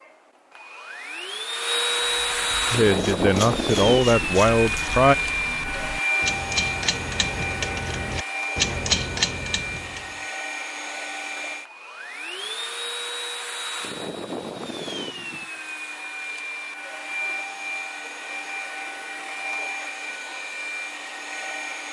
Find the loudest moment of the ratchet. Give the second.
9 s.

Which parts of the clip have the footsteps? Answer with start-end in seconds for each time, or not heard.
not heard.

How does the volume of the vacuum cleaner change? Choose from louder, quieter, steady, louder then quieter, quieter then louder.
quieter.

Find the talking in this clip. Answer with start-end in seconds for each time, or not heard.
2.7-5.2.